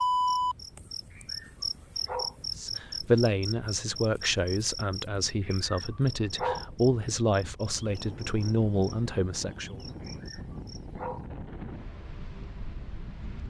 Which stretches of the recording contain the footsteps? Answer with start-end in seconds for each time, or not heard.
not heard.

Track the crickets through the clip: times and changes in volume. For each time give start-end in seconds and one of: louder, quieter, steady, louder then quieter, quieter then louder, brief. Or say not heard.
0.0-11.2 quieter.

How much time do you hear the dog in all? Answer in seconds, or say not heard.
4 s.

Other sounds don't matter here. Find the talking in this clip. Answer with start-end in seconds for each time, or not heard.
2.5-9.8.